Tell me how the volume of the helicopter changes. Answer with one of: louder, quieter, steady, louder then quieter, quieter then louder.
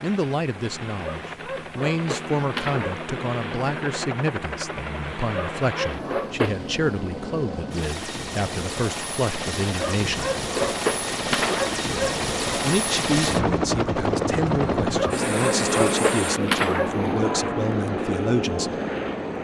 louder.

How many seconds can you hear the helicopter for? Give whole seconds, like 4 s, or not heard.
19 s.